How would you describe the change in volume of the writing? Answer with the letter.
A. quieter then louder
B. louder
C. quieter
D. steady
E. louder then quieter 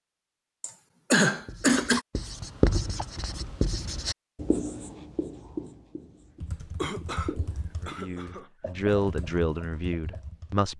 C.